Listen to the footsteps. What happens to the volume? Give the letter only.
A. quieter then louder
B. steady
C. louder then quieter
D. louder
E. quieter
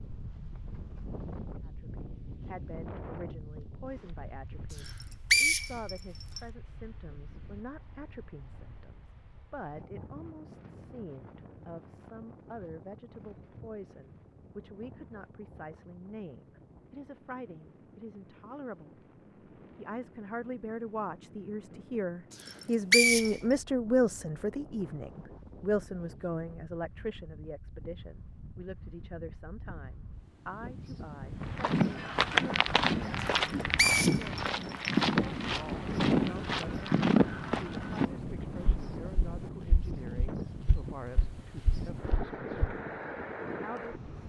E.